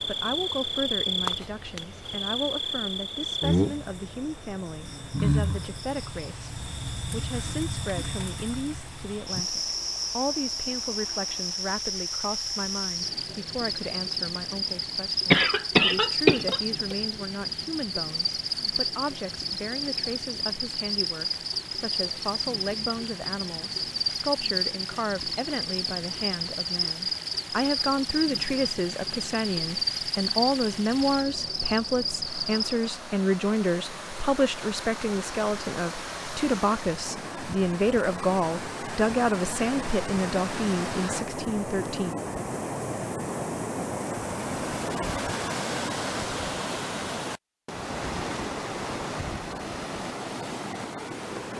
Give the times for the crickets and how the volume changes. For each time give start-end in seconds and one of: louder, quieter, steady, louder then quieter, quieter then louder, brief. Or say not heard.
0.0-33.0 steady.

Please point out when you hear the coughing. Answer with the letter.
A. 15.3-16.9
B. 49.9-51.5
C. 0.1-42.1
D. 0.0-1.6
A.